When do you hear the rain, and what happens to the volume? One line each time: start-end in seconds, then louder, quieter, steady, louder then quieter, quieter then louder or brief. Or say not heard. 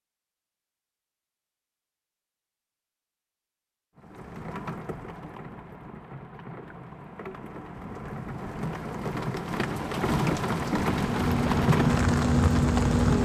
4.0-13.2 louder.